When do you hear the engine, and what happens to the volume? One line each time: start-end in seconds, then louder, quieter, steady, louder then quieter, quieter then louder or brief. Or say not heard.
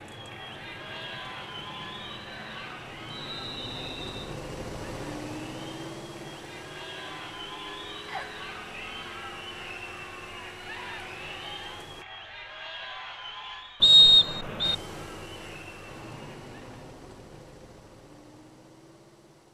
0.0-12.1 louder then quieter
14.6-19.5 quieter.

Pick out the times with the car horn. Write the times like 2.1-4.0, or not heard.
not heard.